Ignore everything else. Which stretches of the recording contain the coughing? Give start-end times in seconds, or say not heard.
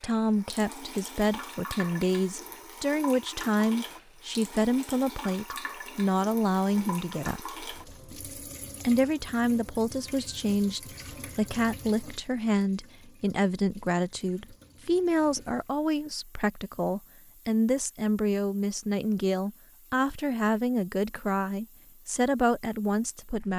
not heard.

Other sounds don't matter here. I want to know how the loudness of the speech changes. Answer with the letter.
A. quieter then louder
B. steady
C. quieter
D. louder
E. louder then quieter
B.